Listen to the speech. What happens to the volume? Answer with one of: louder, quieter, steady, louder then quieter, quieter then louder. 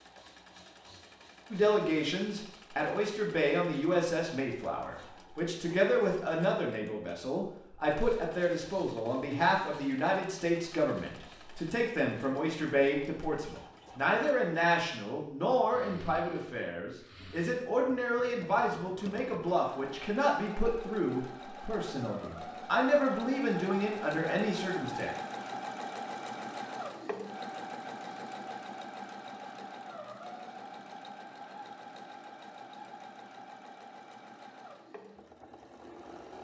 steady.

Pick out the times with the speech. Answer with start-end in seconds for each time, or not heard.
1.5-25.1.